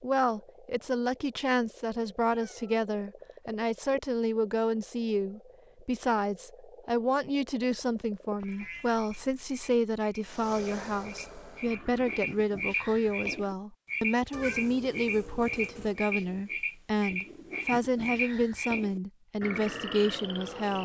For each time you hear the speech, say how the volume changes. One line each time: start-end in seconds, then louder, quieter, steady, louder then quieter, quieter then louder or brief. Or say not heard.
0.0-20.8 steady.